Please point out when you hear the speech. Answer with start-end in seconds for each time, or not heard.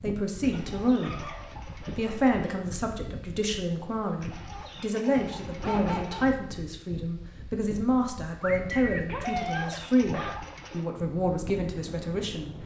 0.0-1.4, 1.9-12.6.